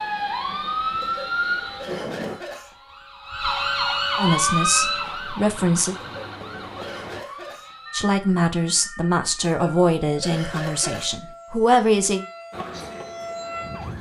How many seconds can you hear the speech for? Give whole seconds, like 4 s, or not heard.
6 s.